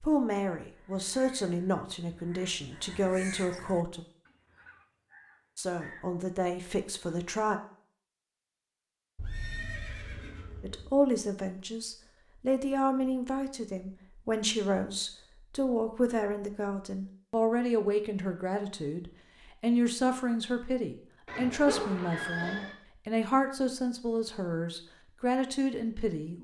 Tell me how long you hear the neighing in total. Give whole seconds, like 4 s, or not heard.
3 s.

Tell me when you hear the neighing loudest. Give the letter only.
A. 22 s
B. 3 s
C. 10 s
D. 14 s
A.